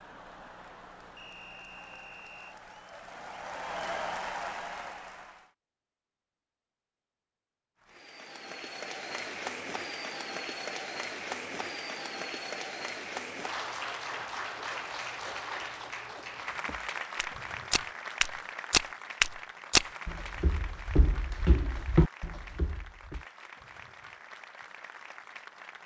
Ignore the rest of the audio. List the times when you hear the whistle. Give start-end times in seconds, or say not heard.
1.1-2.5.